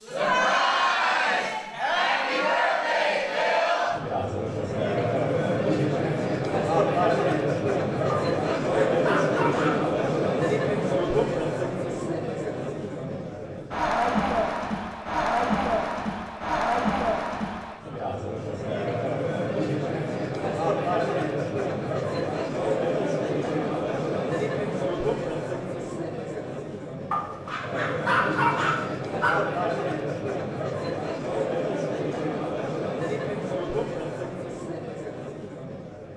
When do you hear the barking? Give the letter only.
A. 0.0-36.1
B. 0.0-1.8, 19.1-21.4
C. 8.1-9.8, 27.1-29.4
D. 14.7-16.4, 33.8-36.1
C.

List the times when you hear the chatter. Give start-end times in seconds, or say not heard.
0.0-36.1.